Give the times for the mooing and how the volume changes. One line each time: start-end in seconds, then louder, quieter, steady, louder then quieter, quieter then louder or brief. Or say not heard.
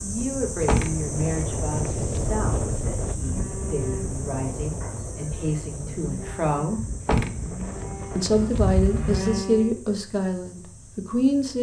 3.2-9.7 quieter then louder.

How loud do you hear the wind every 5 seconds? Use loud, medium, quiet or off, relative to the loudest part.
loud, medium, off.